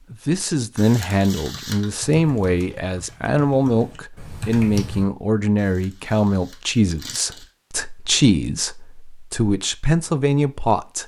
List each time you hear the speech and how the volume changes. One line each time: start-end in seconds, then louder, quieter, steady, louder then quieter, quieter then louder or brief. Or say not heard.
0.1-11.0 steady.